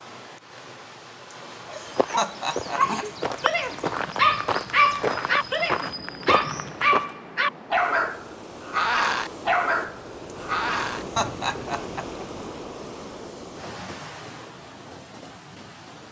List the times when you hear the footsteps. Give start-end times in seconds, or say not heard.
1.8-7.2.